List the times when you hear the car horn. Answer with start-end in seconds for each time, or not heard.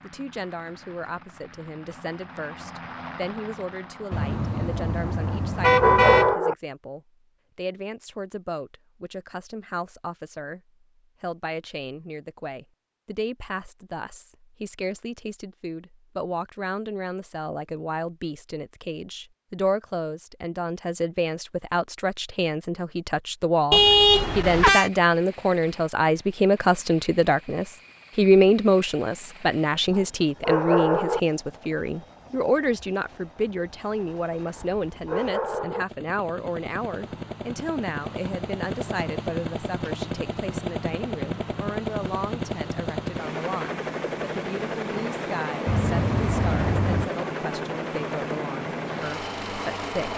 4.1-6.3, 23.7-24.9, 45.6-47.1.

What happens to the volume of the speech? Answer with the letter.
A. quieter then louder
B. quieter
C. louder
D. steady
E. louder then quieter
E.